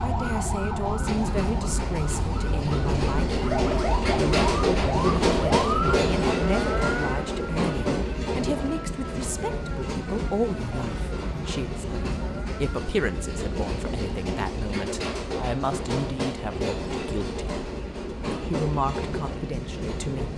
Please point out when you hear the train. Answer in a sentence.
You can hear the train from 0.0 to 20.3 s.